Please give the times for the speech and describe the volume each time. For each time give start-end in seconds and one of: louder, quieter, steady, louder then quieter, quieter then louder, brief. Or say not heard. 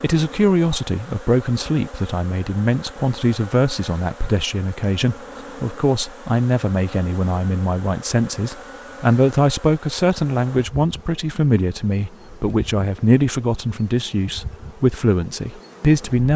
0.0-16.3 steady.